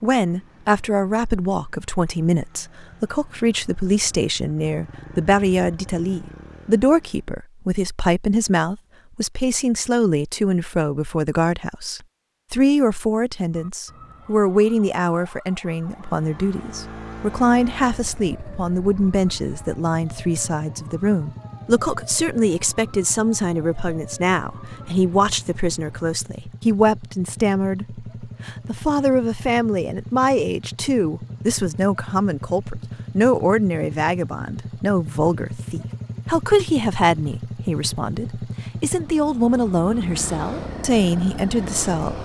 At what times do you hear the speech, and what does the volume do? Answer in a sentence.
The speech can be heard from 0.0 to 42.1 s, at a steady volume.